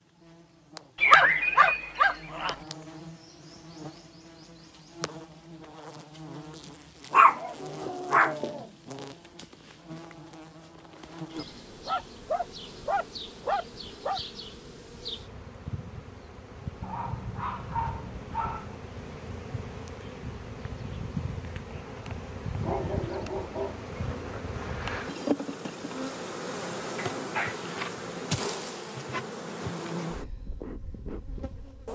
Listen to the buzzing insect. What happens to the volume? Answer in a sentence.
The loudness of the buzzing insect goes up.